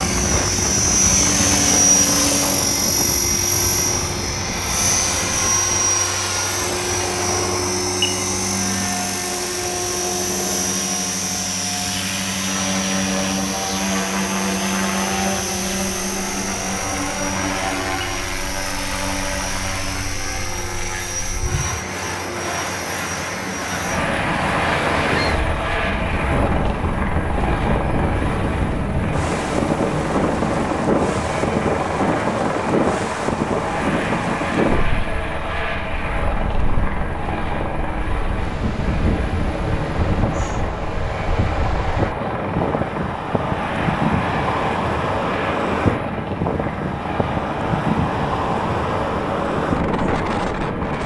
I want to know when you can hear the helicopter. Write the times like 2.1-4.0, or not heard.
0.0-51.0.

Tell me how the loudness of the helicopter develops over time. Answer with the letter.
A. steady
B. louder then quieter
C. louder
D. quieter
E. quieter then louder
D.